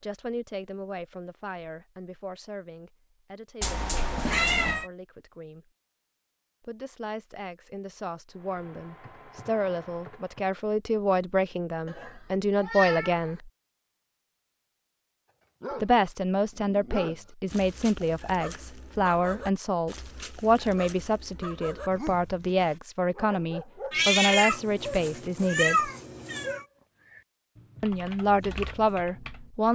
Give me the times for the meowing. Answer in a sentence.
The meowing can be heard from 3.6 to 4.8 s, from 11.8 to 13.3 s and from 23.9 to 26.6 s.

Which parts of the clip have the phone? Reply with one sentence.
The phone can't be heard in this clip.